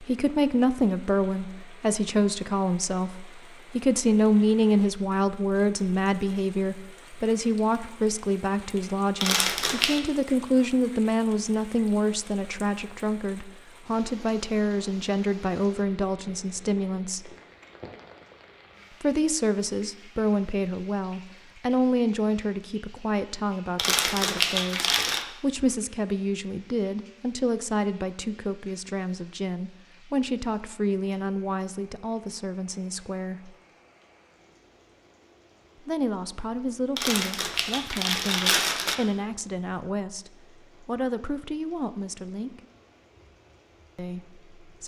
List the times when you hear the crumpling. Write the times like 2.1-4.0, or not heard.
9.2-10.0, 23.8-25.2, 37.0-39.0.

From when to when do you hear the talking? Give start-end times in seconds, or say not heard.
0.0-17.4, 19.0-33.5, 35.8-42.6, 44.0-44.8.